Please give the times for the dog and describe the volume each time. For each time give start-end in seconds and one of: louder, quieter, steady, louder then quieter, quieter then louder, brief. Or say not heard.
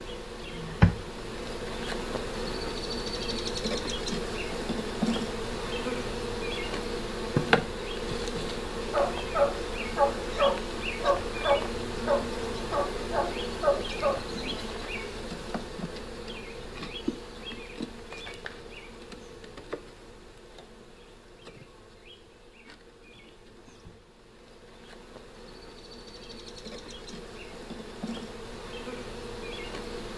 8.8-14.2 steady.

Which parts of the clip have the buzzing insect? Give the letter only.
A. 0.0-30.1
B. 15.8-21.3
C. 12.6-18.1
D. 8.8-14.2
A.